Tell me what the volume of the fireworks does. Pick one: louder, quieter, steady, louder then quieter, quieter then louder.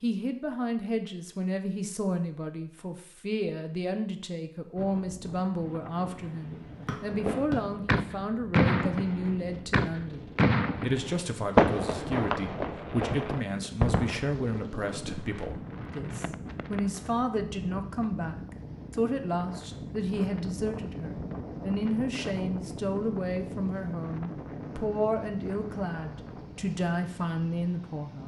quieter.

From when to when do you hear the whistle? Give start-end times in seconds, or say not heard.
6.8-7.5.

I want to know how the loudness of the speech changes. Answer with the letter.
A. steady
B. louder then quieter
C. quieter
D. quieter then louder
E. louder
A.